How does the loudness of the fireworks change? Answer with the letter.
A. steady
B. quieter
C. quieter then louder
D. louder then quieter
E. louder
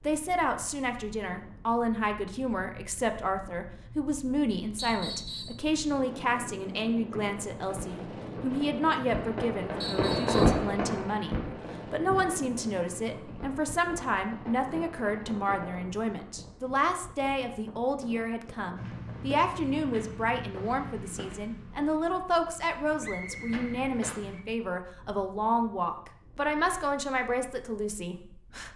D.